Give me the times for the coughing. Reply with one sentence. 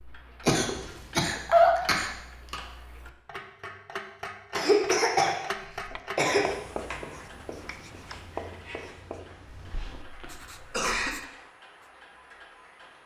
You can hear the coughing from 0.5 to 2.5 s, from 4.5 to 6.5 s and from 9.7 to 11.2 s.